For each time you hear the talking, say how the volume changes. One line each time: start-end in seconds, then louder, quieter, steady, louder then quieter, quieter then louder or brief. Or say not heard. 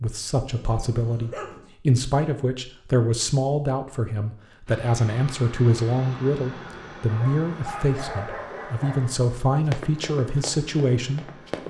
0.0-11.6 steady.